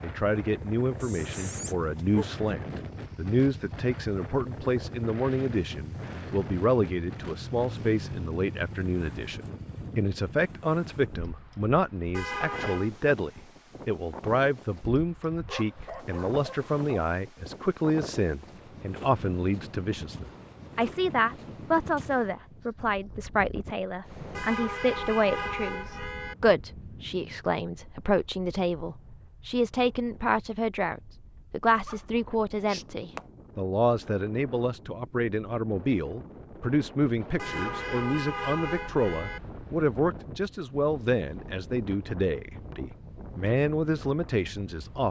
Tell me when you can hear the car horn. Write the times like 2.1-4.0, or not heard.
12.1-12.9, 24.4-26.4, 37.4-39.4.